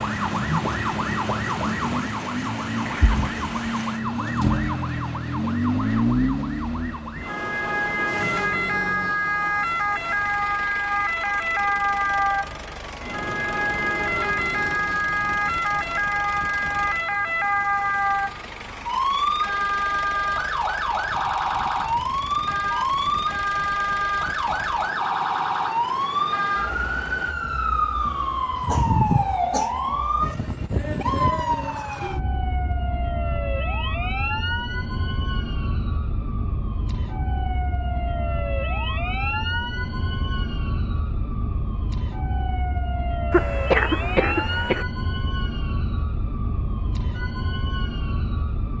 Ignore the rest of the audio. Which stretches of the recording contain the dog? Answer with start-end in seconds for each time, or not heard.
not heard.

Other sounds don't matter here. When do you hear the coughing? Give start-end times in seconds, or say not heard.
2.8-3.2, 28.6-29.7, 43.3-44.9.